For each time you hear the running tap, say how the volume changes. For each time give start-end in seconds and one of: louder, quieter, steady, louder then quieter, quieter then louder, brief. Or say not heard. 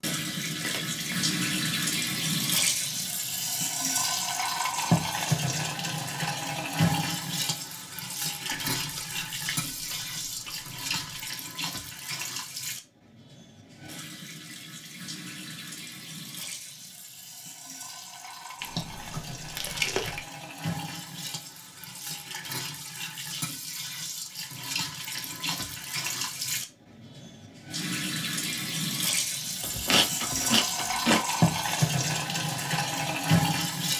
0.0-33.9 quieter then louder.